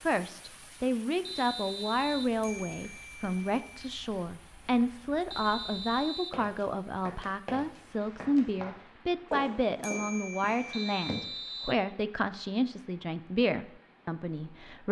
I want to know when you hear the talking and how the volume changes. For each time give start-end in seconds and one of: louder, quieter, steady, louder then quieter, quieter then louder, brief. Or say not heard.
0.1-14.8 steady.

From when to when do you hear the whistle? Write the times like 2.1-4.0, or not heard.
1.2-2.4, 5.3-6.4, 10.7-11.8.